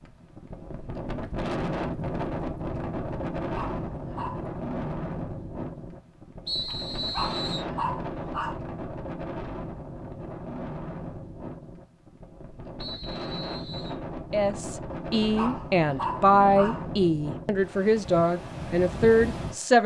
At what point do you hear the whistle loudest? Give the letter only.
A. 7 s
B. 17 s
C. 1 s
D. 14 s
A.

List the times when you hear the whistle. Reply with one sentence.
The whistle can be heard from 6.5 to 7.7 s and from 12.8 to 13.9 s.